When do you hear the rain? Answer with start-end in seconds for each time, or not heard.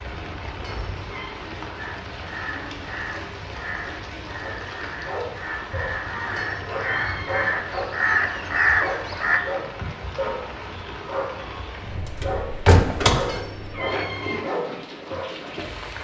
0.0-16.0.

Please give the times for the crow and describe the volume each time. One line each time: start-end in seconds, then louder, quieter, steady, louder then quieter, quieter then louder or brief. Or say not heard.
1.8-9.4 louder.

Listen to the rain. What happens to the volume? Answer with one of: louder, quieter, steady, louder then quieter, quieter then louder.
steady.